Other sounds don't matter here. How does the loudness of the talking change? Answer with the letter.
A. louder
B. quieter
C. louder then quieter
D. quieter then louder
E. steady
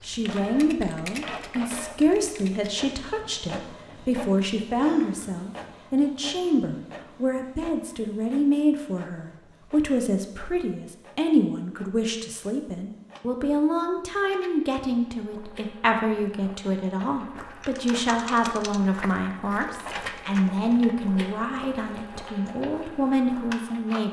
E.